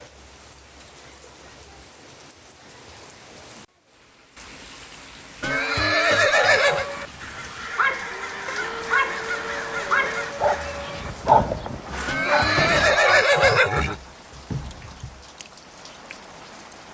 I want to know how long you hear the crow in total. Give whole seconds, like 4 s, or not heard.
7 s.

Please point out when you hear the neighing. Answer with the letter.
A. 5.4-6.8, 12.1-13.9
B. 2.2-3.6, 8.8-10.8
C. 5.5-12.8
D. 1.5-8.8
A.